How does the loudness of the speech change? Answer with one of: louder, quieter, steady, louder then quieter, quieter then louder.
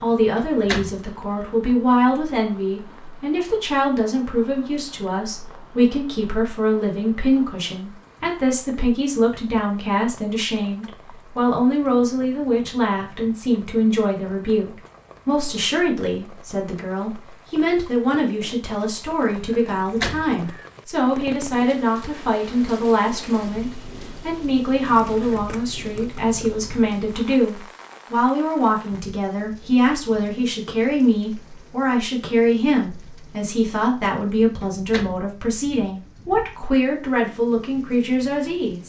steady.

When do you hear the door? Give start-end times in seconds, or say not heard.
0.1-1.1, 19.4-20.4, 34.6-35.1.